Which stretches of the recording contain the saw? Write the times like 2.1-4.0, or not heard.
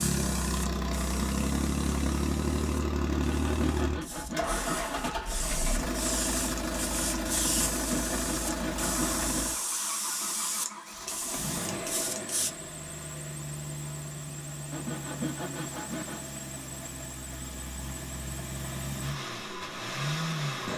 3.1-5.1, 7.4-9.4, 14.7-16.4.